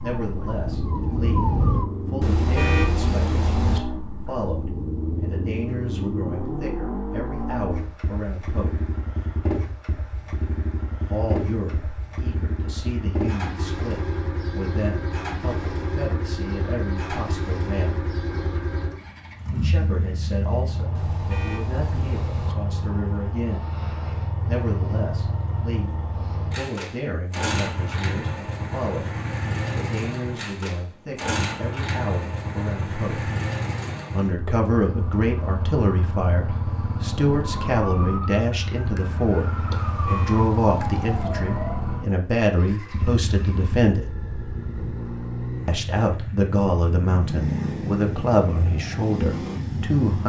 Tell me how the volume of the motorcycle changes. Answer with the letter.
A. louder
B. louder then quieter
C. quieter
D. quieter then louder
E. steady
E.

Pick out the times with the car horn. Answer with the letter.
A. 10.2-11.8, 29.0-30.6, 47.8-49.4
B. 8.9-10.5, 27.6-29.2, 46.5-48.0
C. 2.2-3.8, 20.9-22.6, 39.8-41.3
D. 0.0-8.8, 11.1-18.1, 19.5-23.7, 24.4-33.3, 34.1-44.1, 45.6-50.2
C.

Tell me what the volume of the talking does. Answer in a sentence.
The volume of the talking goes up.